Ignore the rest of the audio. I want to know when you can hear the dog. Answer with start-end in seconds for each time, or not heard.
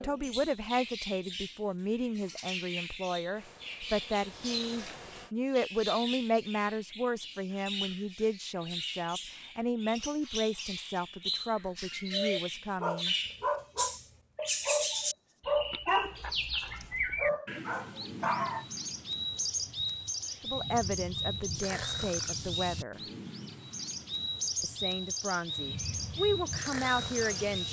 12.1-18.6.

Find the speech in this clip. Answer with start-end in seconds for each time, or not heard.
0.0-13.2, 20.4-23.0, 24.6-27.6.